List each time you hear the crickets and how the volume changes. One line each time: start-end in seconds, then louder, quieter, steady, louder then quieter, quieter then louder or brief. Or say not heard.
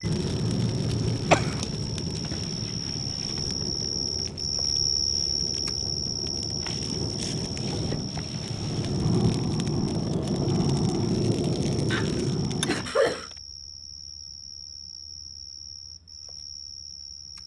0.0-17.4 louder then quieter.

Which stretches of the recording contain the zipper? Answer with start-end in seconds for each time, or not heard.
not heard.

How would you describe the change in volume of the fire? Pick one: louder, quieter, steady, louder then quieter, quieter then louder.
quieter then louder.